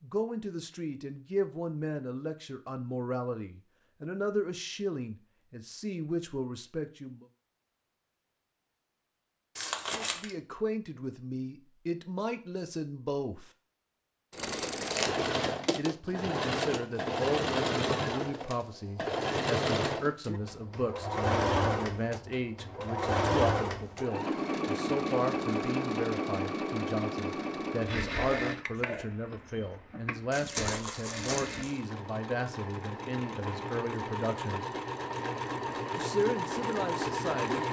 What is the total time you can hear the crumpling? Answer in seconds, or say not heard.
3 s.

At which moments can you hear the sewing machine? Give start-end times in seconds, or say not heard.
14.3-37.6.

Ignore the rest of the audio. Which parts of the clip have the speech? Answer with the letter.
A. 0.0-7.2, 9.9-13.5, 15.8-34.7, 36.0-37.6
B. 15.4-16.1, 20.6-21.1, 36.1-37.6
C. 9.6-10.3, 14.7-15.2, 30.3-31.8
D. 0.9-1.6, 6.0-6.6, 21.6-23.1
A.